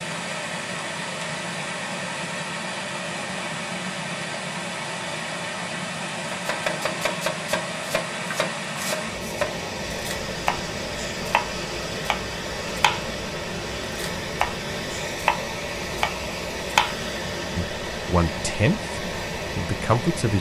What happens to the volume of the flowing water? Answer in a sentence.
The volume of the flowing water stays about the same.